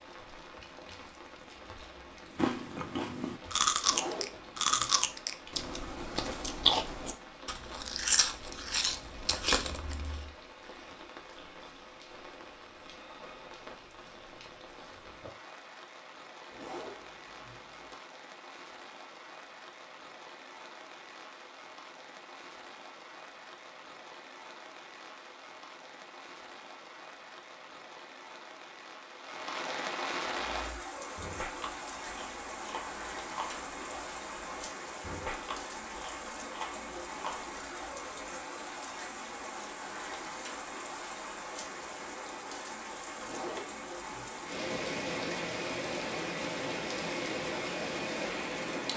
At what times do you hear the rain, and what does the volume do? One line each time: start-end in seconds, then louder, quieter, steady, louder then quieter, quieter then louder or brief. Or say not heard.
0.0-48.9 louder.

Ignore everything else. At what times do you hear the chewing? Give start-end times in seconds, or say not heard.
2.4-10.3, 30.6-38.1.